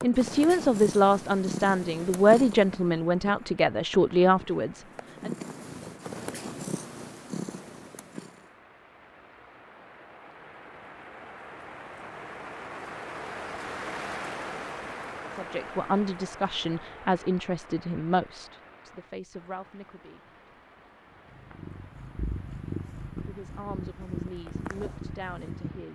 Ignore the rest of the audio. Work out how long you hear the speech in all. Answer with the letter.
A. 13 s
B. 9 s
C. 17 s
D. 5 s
A.